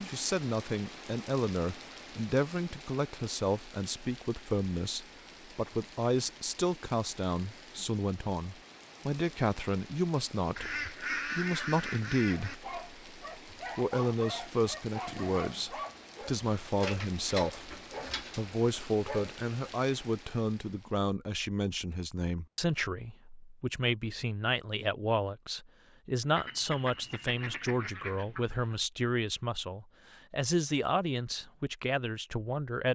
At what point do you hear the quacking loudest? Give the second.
11 s.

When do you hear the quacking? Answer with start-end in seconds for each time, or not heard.
10.6-12.6, 26.4-28.8.